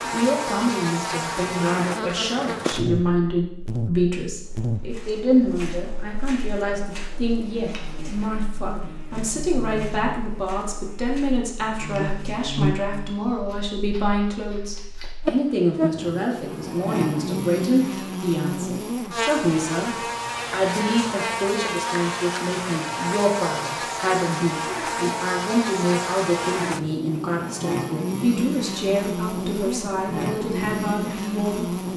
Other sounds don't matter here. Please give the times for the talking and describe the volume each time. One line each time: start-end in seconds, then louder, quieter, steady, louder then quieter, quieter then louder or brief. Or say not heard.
0.0-31.7 steady.